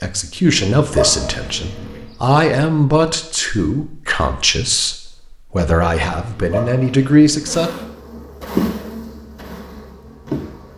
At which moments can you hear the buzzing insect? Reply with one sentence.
The buzzing insect can be heard from 7.5 to 10.7 s.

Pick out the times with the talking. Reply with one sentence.
You can hear the talking from 0.0 to 7.7 s.